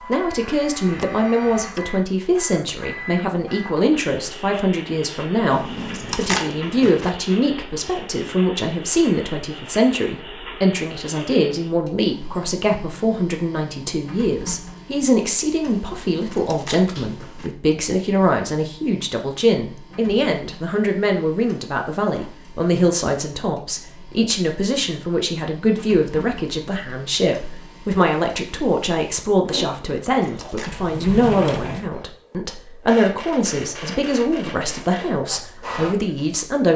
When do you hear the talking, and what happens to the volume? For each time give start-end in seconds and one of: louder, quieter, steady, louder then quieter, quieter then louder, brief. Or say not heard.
0.1-36.7 steady.